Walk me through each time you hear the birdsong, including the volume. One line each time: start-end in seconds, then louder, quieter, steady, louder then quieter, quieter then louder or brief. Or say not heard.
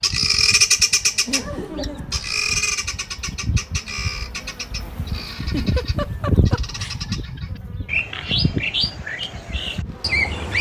0.0-10.5 quieter then louder.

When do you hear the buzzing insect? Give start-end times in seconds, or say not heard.
0.0-10.2.